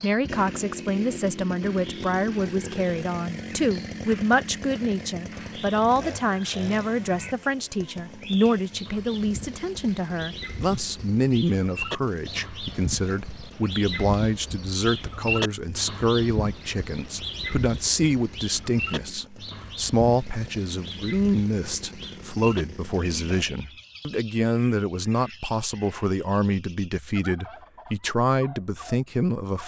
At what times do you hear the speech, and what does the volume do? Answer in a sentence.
The speech can be heard from 0.0 to 29.6 s, at a steady volume.